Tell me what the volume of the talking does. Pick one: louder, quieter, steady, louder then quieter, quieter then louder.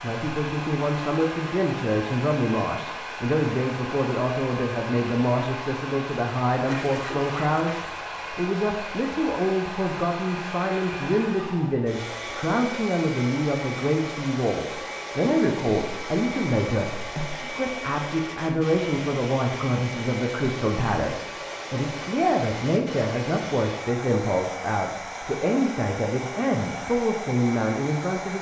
steady.